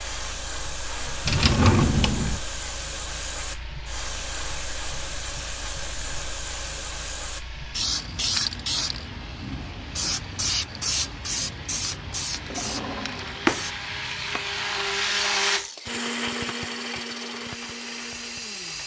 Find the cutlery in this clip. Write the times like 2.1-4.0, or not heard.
not heard.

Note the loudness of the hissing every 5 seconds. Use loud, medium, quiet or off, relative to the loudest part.
loud, loud, loud, medium.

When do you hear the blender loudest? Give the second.
15 s.